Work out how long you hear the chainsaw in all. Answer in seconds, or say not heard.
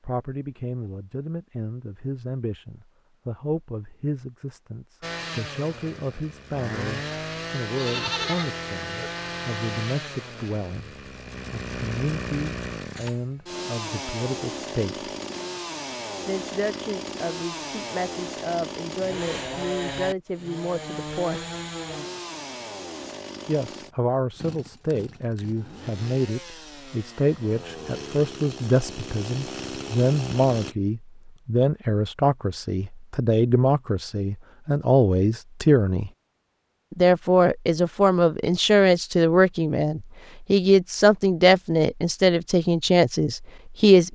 26 s.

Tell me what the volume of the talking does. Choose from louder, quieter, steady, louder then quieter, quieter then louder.
louder.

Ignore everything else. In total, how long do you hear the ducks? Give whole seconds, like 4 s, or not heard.
not heard.